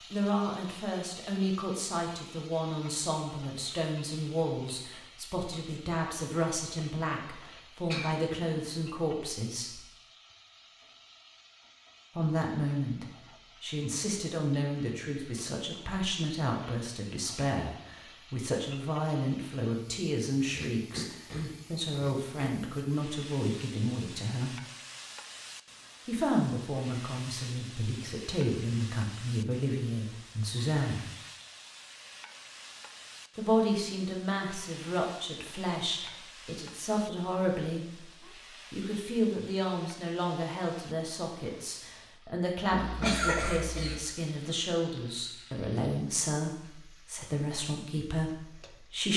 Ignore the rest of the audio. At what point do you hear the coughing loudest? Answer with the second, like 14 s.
43 s.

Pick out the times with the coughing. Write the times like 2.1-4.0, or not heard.
7.8-8.5, 20.5-22.5, 42.7-44.0.